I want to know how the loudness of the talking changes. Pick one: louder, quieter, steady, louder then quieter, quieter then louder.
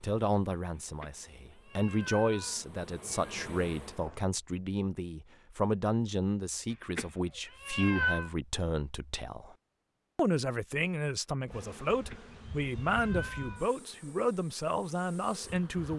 steady.